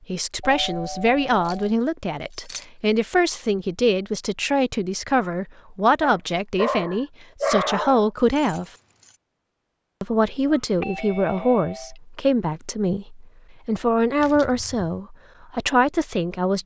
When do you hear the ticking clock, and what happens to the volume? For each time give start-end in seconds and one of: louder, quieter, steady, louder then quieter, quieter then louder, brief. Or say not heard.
not heard.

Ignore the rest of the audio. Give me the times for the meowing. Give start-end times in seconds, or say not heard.
not heard.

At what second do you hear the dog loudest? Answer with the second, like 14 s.
8 s.